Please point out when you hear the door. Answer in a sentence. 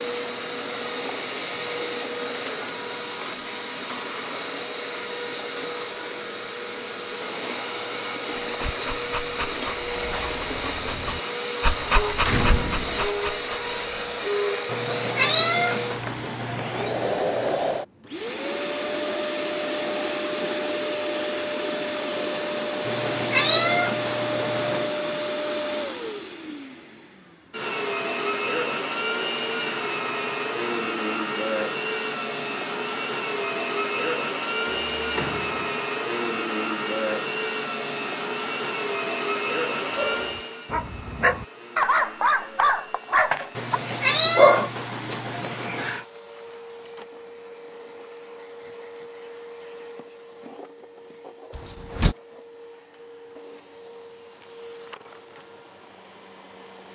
The door can be heard from 12.2 to 13.1 s, from 34.6 to 35.8 s and from 51.5 to 52.1 s.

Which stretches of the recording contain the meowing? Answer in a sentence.
You can hear the meowing from 14.7 to 16.9 s, from 22.9 to 24.9 s and from 43.5 to 46.0 s.